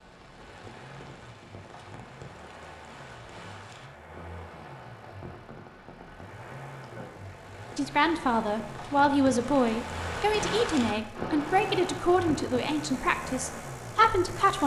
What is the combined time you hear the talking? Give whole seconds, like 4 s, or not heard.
7 s.